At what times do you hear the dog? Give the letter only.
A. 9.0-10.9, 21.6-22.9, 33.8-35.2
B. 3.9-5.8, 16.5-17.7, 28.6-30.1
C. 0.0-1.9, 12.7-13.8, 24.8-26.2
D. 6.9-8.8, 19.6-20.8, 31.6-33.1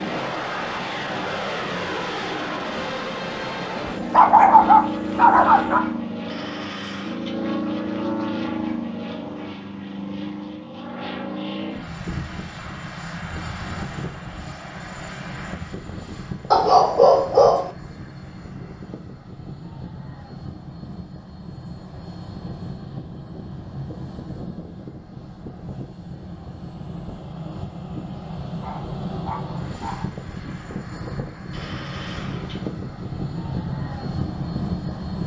B.